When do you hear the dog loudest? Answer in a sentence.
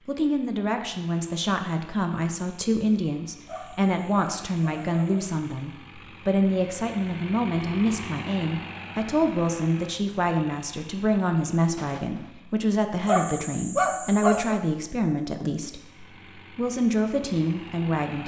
The volume of the dog peaks at 14 seconds.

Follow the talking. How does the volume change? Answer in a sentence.
The loudness of the talking stays about the same.